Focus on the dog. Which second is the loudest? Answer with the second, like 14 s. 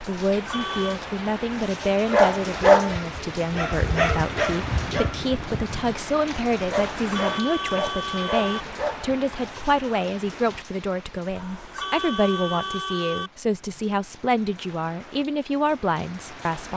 3 s.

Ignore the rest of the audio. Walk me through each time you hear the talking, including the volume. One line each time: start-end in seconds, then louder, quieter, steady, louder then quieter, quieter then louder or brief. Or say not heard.
0.1-16.7 steady.